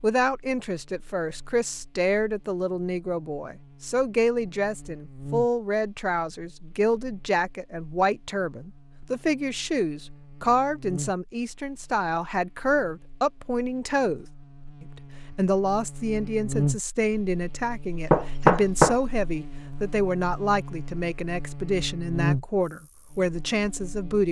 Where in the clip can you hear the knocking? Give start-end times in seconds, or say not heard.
18.1-18.9.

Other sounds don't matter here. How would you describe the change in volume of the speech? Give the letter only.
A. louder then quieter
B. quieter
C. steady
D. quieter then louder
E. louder
C.